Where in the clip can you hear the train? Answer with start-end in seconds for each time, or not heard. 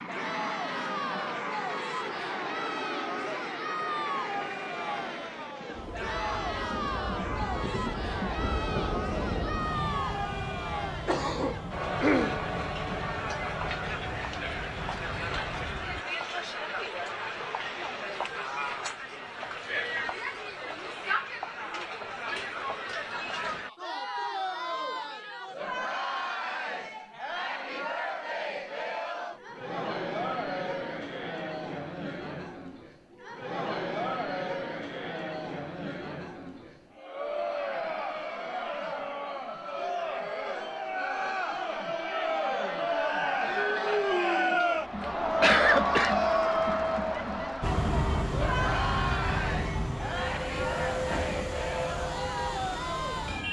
0.0-16.1, 47.6-53.4.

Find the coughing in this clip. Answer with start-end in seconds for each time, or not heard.
11.1-12.4, 44.6-46.1.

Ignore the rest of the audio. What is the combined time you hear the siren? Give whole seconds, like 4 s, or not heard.
not heard.